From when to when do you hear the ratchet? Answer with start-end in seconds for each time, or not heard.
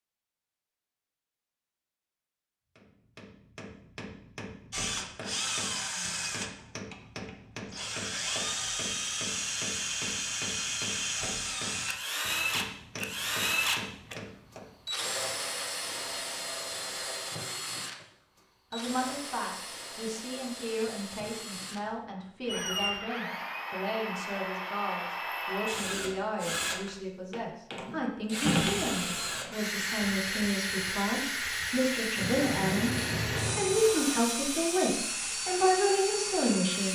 not heard.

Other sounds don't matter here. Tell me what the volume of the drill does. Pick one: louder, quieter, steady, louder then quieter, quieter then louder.
quieter then louder.